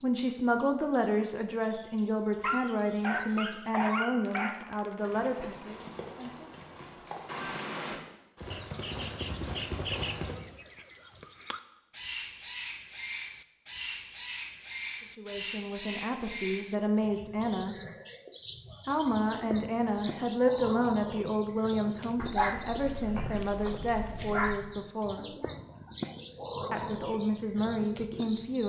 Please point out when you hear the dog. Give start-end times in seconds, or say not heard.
2.4-4.6, 22.1-24.6.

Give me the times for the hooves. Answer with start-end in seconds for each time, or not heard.
5.0-10.3.